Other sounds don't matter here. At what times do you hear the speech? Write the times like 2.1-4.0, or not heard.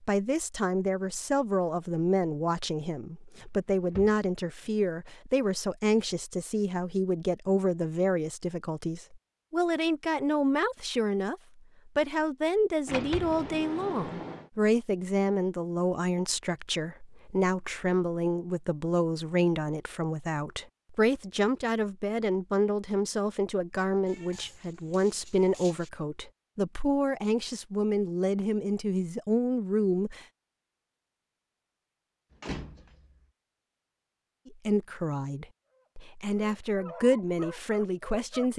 0.0-30.2, 34.5-38.5.